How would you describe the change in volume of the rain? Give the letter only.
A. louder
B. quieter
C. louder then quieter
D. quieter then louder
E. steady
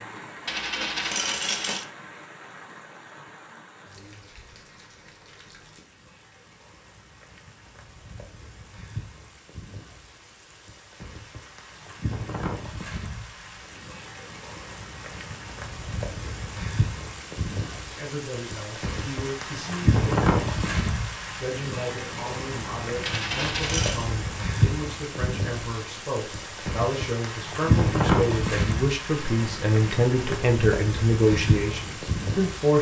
A.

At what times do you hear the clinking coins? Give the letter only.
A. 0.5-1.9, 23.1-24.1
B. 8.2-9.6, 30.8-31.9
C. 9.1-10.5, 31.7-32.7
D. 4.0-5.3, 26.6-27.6
A.